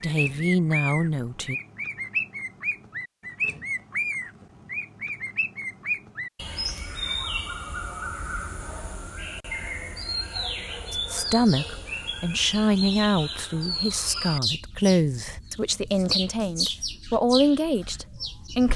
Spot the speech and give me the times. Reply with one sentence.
The speech can be heard from 0.0 to 1.6 s and from 10.9 to 18.7 s.